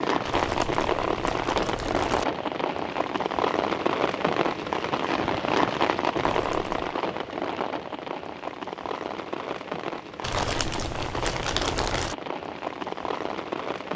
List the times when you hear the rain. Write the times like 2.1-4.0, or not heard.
0.0-13.9.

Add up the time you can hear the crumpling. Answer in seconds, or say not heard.
5 s.